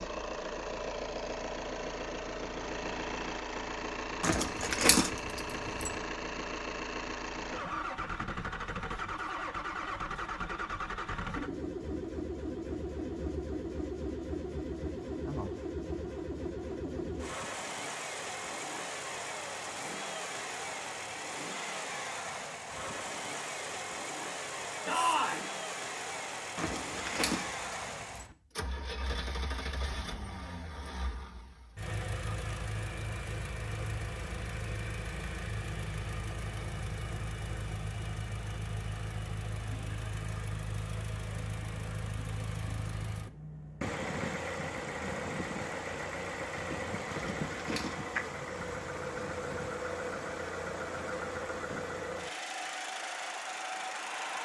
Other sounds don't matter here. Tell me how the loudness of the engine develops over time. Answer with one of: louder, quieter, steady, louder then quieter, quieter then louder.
steady.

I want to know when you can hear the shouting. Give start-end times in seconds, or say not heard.
24.9-25.4.